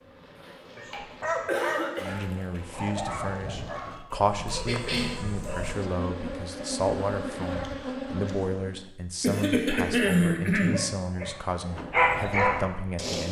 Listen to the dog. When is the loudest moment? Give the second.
12 s.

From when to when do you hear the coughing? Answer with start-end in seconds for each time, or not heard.
0.5-2.2, 4.7-5.2, 9.2-11.3.